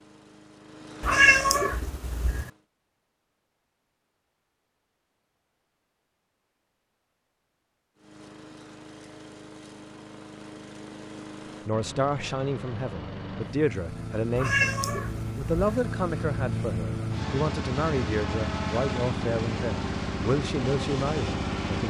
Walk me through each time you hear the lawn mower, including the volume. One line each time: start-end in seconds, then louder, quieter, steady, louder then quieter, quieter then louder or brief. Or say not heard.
0.0-2.6 brief
8.0-21.8 louder.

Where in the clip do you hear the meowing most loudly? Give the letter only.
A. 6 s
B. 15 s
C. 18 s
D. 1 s
D.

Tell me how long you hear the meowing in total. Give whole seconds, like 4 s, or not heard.
3 s.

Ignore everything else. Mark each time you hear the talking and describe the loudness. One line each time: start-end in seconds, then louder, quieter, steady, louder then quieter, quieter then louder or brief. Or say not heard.
11.7-21.8 steady.